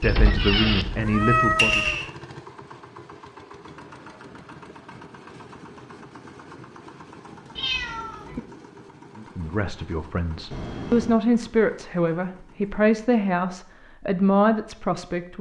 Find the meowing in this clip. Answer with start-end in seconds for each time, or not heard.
0.0-2.1, 7.5-8.4, 10.5-11.2.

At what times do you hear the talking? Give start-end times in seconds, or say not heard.
0.0-1.9, 9.2-15.3.